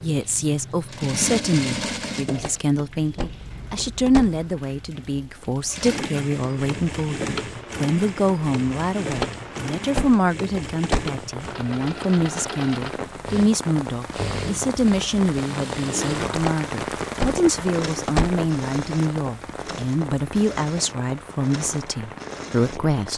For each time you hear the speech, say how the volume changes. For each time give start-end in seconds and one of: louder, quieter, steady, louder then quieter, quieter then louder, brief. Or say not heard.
0.0-23.1 steady.